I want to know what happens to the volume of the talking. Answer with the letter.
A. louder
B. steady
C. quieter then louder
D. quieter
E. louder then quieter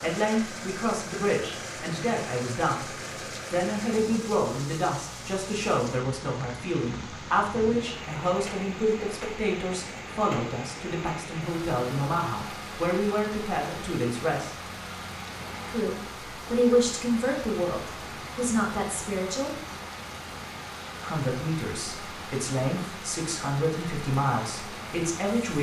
B.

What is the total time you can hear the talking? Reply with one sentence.
The talking can be heard for 23 seconds in total.